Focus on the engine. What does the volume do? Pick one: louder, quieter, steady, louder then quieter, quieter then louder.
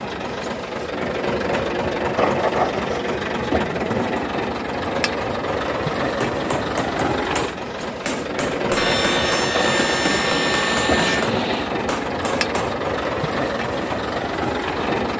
steady.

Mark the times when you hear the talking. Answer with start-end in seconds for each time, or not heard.
not heard.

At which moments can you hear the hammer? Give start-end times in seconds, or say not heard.
6.2-12.8.